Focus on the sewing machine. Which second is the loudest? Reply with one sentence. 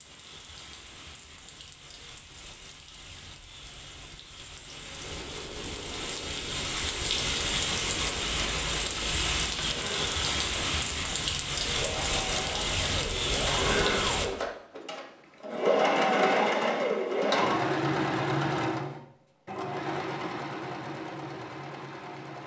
The volume of the sewing machine peaks at 16 seconds.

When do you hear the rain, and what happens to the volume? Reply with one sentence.
The rain can be heard from 0.0 to 14.3 s, getting louder.